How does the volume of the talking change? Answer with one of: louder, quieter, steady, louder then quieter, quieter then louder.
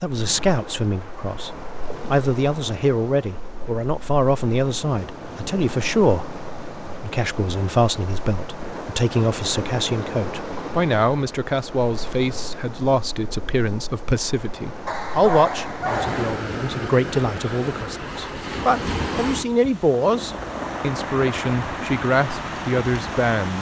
steady.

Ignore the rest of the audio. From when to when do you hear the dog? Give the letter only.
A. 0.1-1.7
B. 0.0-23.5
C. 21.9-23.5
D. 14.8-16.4
D.